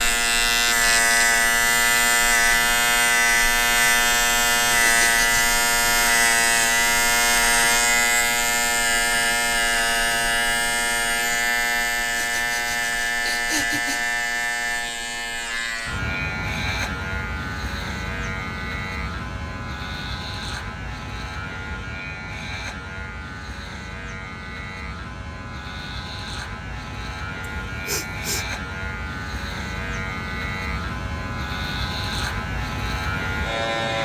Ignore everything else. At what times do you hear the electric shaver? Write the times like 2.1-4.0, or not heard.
0.0-34.0.